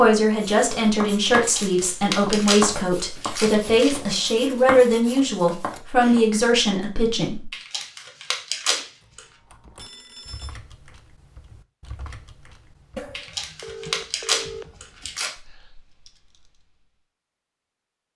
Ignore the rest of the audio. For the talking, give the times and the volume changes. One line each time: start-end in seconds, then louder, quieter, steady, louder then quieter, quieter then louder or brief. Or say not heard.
0.0-7.5 steady.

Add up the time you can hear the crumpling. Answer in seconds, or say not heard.
7 s.